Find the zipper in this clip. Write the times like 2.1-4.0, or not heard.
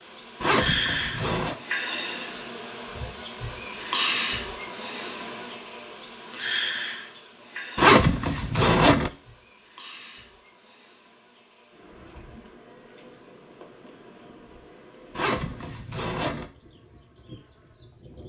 0.4-1.6, 7.8-9.1, 15.2-16.4.